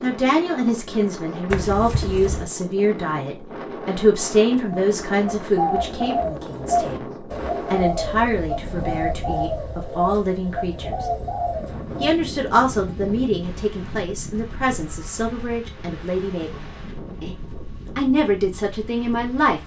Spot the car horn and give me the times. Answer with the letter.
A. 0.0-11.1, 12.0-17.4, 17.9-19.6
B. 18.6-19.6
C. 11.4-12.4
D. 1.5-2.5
D.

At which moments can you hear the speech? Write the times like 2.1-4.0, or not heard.
0.0-11.1, 12.0-17.4, 17.9-19.6.